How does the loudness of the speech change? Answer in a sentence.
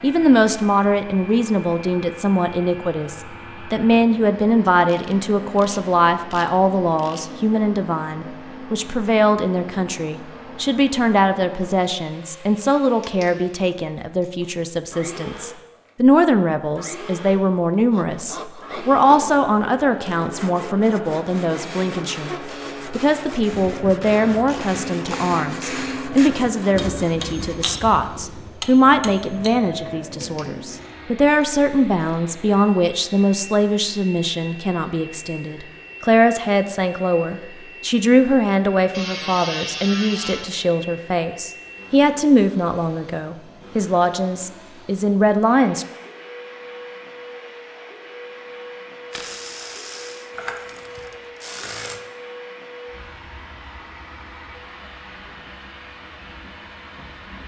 The volume of the speech stays about the same.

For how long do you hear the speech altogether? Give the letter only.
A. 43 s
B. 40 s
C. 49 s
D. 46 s
D.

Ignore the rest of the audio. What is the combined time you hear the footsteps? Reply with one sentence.
The footsteps can't be heard in this clip.